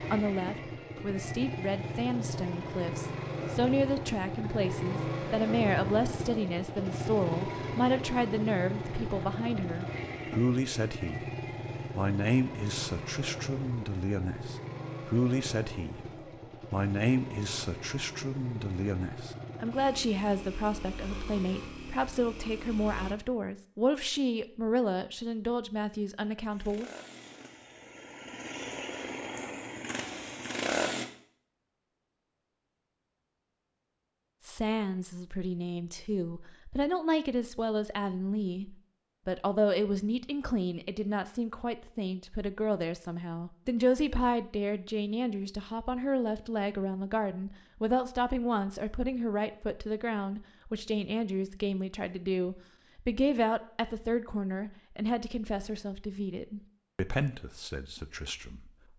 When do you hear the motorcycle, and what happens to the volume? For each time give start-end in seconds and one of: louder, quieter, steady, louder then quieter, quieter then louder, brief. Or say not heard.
0.0-23.1 quieter
26.5-31.1 louder.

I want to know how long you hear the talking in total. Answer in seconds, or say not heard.
50 s.